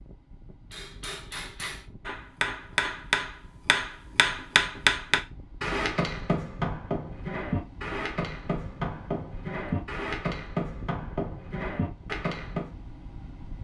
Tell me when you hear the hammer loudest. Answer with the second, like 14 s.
5 s.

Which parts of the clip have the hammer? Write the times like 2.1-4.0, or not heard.
0.7-12.7.